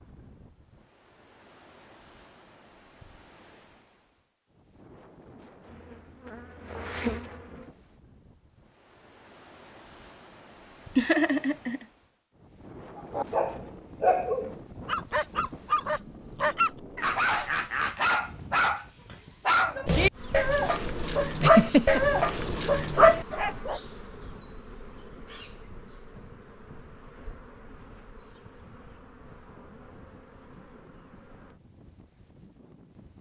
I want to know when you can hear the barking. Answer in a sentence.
The barking can be heard from 12.9 to 23.8 s.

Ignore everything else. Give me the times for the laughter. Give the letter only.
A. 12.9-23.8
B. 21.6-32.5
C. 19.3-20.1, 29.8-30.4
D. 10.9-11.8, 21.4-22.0
D.